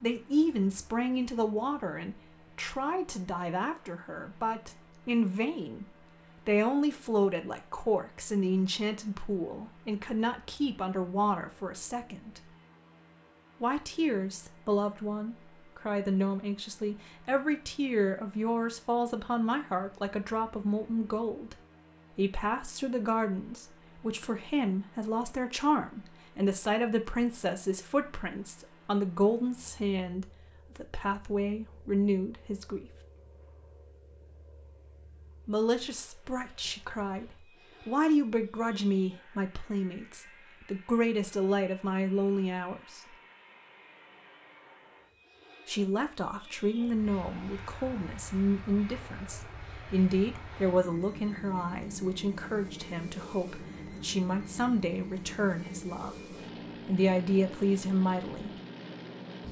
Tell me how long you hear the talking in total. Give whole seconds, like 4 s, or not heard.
52 s.